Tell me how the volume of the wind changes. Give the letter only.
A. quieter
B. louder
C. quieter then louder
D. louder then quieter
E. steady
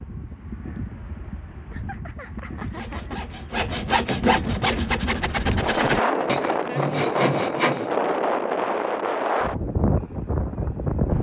B.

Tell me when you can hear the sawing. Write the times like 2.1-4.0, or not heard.
2.5-7.9.